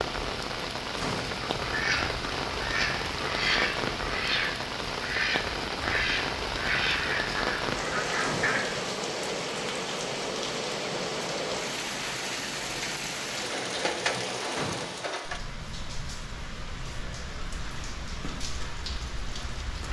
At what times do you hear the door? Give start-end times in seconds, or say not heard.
0.9-1.5, 8.2-8.6, 14.5-15.2.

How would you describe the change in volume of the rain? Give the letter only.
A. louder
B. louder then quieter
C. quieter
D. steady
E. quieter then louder
C.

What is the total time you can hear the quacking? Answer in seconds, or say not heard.
7 s.